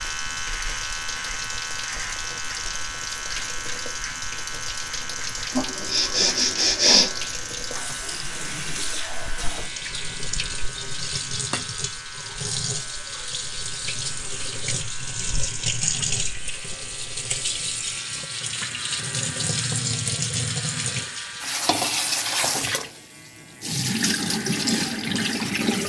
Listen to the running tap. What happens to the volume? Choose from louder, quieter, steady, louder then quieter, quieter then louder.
louder.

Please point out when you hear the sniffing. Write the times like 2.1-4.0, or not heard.
5.5-7.2.